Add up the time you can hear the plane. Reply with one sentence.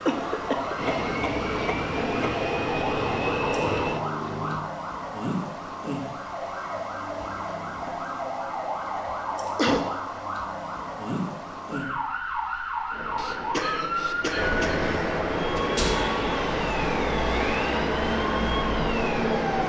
You can hear the plane for 11 seconds altogether.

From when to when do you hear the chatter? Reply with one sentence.
The chatter can't be heard in this clip.